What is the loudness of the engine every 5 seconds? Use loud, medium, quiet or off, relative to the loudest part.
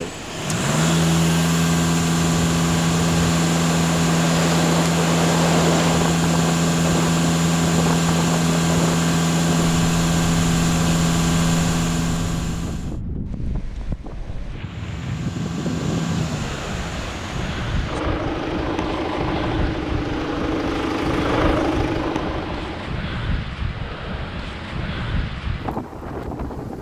loud, loud, loud, medium, medium, off.